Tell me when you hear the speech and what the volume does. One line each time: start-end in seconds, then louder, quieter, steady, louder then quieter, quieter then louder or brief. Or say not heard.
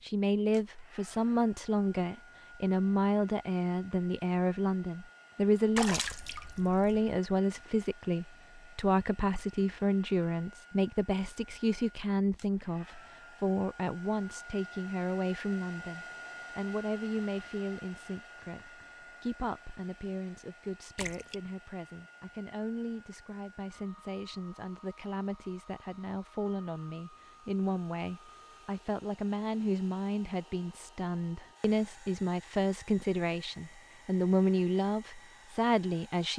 0.0-36.3 quieter then louder.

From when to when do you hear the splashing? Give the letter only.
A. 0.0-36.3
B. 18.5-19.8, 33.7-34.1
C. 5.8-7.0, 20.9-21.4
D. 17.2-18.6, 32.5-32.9
C.